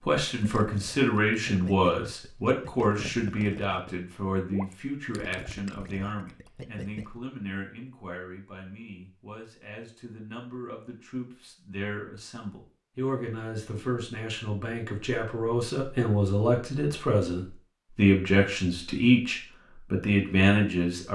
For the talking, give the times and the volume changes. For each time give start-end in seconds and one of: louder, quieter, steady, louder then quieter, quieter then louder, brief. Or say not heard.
0.1-21.1 quieter then louder.